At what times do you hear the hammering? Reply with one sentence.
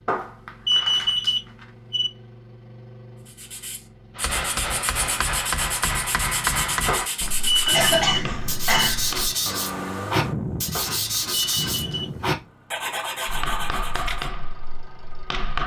The hammering can be heard from 4.2 to 9.3 s and from 13.2 to 15.6 s.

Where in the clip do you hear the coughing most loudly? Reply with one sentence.
The volume of the coughing peaks at 8 seconds.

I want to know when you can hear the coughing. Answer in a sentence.
The coughing can be heard from 7.7 to 9.2 s.